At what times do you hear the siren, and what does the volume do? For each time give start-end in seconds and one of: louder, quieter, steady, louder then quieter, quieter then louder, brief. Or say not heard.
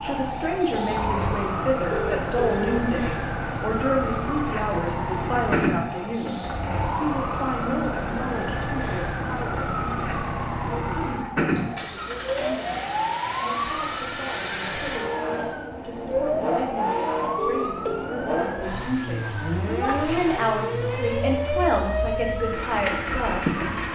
0.0-23.8 steady.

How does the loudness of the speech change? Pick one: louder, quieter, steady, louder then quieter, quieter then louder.
quieter then louder.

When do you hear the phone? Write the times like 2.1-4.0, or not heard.
1.9-2.8, 17.4-18.1.